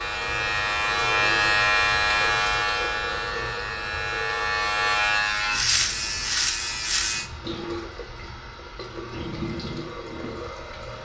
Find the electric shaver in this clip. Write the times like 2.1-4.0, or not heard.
0.0-7.3.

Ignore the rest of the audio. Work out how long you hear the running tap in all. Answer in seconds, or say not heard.
11 s.